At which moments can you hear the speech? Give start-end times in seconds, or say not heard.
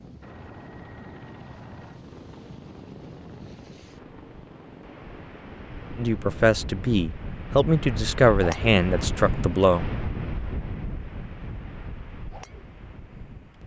6.0-9.8.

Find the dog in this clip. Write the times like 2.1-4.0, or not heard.
not heard.